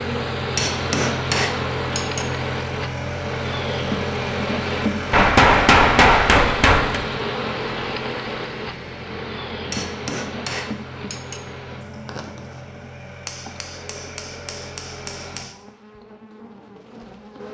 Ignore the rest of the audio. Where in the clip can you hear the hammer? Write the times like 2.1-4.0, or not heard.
0.6-2.2, 5.1-7.0, 9.7-11.4, 13.2-15.6.